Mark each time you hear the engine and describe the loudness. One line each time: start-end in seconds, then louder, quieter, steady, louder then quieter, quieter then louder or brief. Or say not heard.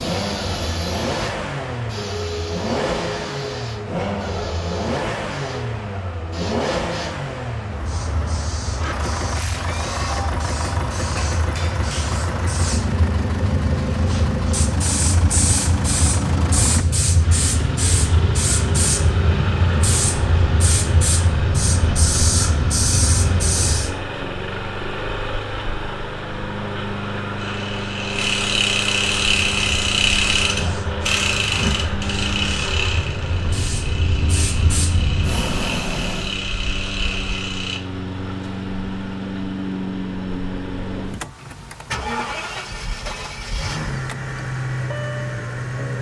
0.0-45.9 steady.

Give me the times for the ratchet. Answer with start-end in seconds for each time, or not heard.
27.4-37.8.